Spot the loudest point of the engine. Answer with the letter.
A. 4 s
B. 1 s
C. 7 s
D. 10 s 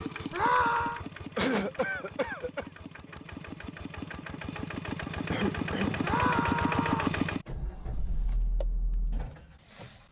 C.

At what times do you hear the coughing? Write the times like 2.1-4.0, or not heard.
1.4-2.6, 5.3-6.0.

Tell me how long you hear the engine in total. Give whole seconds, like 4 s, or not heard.
10 s.